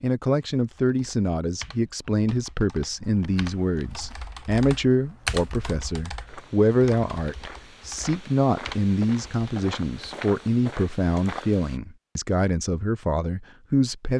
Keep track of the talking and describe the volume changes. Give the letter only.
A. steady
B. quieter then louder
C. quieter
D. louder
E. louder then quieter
A.